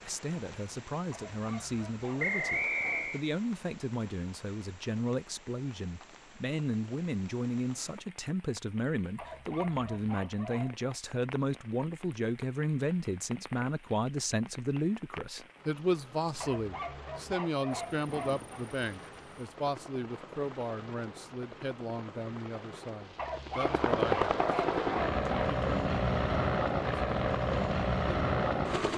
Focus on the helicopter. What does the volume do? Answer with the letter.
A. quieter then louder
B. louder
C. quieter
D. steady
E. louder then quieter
B.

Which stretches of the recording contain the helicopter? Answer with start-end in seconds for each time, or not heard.
17.7-28.9.